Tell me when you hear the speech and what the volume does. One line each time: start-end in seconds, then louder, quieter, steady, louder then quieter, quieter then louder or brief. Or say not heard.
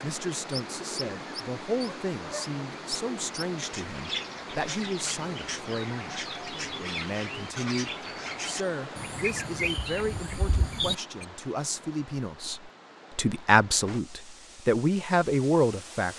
0.0-16.1 louder.